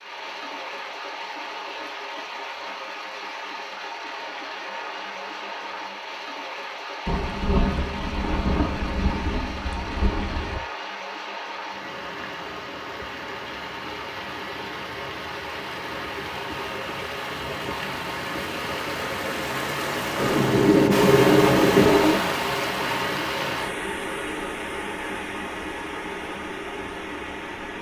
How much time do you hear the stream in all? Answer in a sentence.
The stream can be heard for 28 seconds in total.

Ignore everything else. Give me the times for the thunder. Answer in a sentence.
You can hear the thunder from 7.0 to 10.6 s and from 20.1 to 22.2 s.